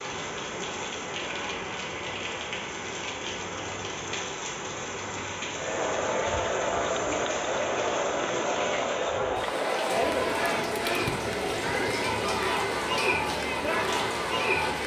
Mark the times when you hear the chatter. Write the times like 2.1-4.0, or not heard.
5.5-14.8.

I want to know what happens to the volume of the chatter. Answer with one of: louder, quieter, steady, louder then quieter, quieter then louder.
steady.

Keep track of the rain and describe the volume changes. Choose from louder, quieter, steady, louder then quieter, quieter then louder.
steady.